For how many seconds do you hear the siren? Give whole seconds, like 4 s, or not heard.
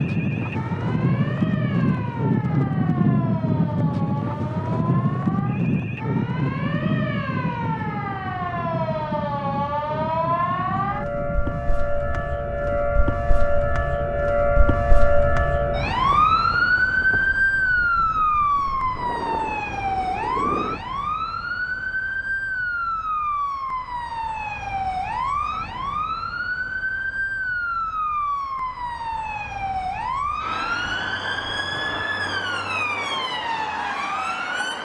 35 s.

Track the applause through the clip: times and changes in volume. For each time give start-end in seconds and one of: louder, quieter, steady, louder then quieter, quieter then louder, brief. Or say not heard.
not heard.